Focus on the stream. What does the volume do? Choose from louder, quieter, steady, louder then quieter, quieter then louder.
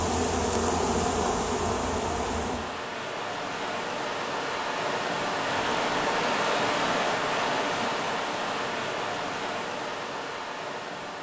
louder then quieter.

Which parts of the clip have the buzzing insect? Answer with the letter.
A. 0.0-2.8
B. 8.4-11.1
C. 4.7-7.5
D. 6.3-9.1
A.